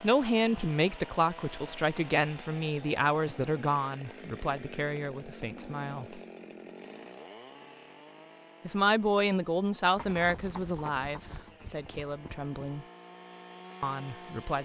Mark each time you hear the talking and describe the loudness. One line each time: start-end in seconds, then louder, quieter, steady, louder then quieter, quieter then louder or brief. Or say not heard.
0.0-6.2 quieter
8.7-12.8 quieter
13.8-14.6 brief.